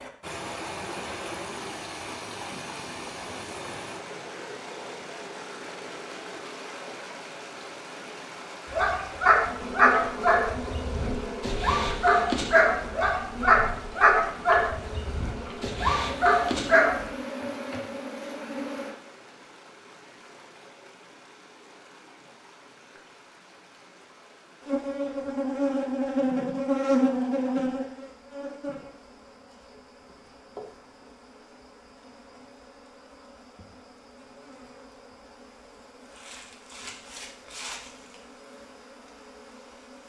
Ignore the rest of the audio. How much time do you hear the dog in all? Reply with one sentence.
You can hear the dog for 8 seconds altogether.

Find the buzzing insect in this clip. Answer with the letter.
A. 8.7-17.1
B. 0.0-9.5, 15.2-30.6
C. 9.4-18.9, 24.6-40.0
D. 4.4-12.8
C.